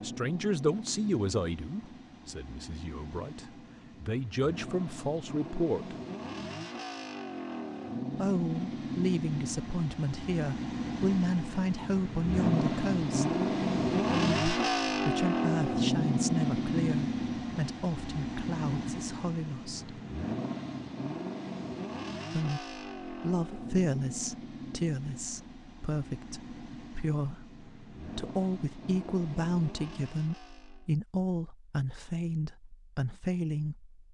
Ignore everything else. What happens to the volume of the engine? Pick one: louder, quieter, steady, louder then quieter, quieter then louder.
louder then quieter.